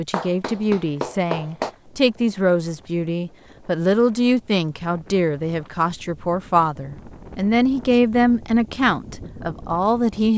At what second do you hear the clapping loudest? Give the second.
1 s.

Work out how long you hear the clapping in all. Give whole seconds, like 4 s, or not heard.
2 s.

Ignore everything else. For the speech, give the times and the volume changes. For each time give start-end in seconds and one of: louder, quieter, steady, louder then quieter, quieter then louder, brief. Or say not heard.
0.0-10.3 steady.